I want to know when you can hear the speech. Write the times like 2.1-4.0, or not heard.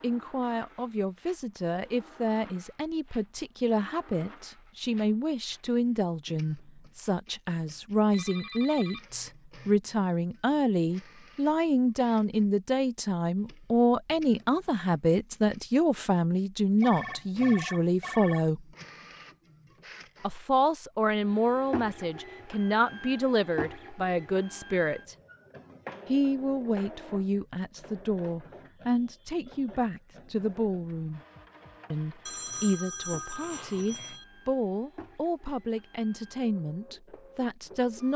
0.0-18.6, 20.2-25.1, 26.1-31.2, 31.9-38.1.